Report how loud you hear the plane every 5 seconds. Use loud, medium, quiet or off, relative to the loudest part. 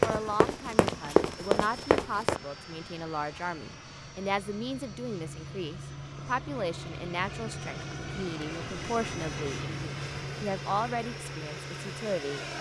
medium, loud, loud.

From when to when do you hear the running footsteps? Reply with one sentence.
You can hear the running footsteps from 0.0 to 2.4 s.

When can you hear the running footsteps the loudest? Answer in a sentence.
The volume of the running footsteps peaks at 1 second.